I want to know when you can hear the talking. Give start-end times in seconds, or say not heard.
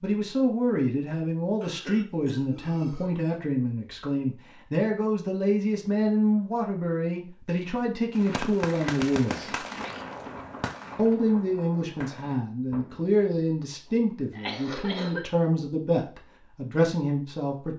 0.0-9.4, 10.9-17.7.